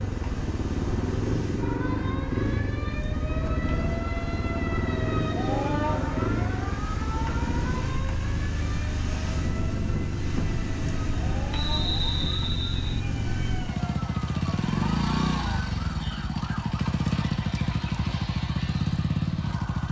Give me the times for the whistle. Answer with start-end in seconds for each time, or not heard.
11.5-13.0.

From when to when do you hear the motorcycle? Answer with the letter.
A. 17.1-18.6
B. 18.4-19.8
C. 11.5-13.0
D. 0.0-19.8
D.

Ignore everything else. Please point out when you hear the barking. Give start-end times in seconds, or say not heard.
not heard.